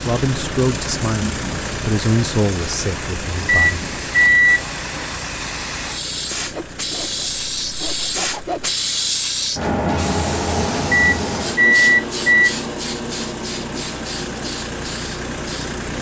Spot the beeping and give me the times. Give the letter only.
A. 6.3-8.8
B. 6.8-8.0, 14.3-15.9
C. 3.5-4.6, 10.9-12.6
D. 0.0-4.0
C.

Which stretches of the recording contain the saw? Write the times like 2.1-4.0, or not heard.
6.3-8.8.